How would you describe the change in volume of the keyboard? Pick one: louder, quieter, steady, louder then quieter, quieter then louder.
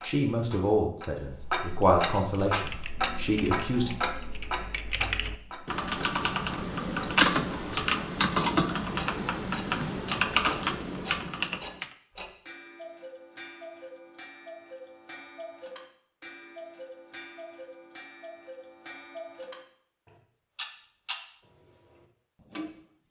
louder.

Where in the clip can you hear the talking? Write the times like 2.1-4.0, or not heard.
0.0-3.9.